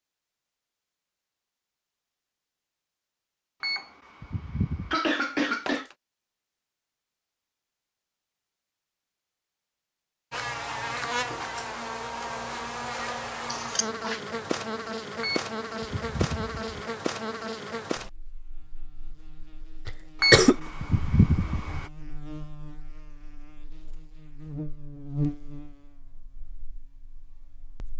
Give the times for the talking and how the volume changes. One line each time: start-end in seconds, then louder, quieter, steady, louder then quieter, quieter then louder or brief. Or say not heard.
not heard.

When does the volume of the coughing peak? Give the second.
20 s.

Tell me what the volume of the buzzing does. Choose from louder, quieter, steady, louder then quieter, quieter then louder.
quieter then louder.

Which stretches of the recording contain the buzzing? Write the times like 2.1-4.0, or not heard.
10.3-27.9.